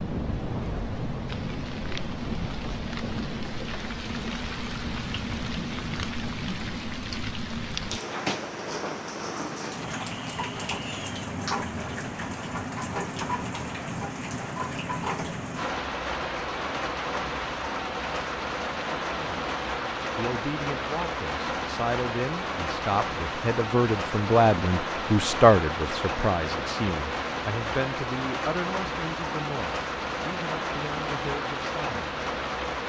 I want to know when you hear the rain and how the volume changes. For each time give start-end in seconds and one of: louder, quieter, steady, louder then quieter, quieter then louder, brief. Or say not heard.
0.0-32.8 steady.